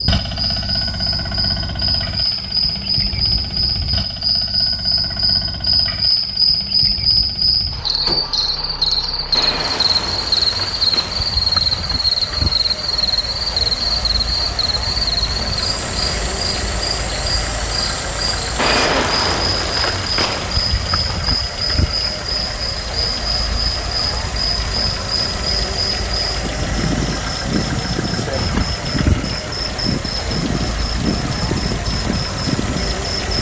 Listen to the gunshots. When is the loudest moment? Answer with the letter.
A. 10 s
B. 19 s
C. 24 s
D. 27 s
B.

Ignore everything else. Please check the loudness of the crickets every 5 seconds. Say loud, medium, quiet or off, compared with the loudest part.
loud, loud, loud, medium, medium, medium, medium.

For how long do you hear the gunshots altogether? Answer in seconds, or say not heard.
4 s.